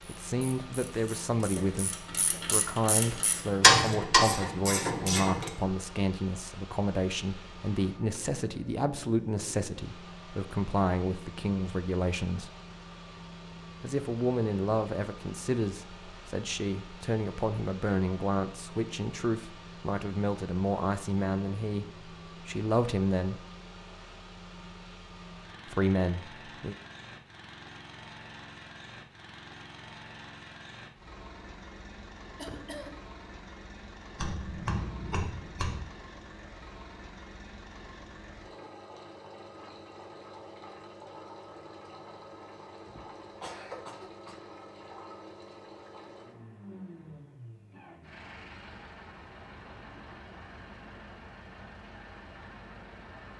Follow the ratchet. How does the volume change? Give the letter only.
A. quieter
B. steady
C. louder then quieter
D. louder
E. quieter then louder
C.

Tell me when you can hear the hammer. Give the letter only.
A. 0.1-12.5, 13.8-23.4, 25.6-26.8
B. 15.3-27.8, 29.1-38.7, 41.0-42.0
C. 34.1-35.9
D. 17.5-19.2
C.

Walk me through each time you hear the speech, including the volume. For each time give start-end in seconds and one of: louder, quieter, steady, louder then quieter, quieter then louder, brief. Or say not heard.
0.1-12.5 steady
13.8-23.4 steady
25.6-26.8 brief.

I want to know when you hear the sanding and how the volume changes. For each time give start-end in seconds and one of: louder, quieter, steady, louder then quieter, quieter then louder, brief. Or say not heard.
not heard.